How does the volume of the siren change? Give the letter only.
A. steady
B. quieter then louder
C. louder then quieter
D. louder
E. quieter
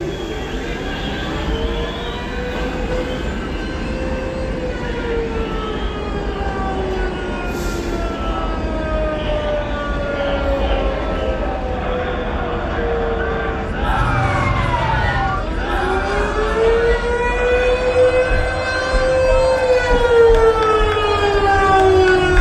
D.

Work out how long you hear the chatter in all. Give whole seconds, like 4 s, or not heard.
22 s.